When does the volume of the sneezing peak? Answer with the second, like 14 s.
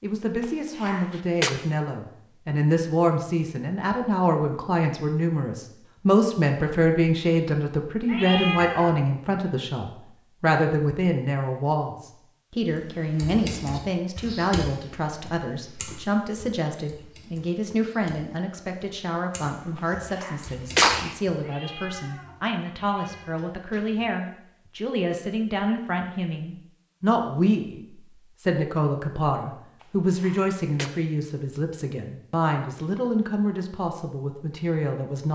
21 s.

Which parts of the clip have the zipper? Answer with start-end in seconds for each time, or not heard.
not heard.